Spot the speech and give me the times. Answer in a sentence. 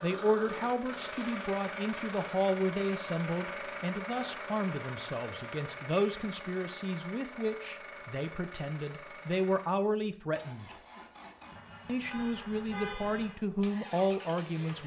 The speech can be heard from 0.0 to 10.8 s and from 11.8 to 14.8 s.